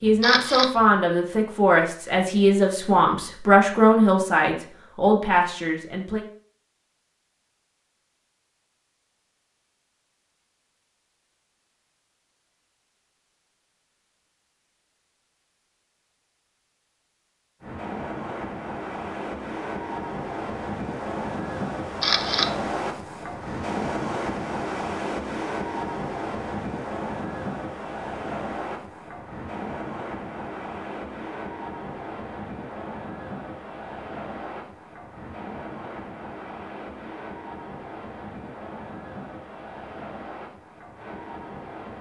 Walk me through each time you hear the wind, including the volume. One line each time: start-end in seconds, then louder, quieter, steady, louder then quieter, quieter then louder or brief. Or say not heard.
17.6-41.9 quieter.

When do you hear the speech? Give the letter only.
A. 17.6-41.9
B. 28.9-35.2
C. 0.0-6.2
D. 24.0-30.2
C.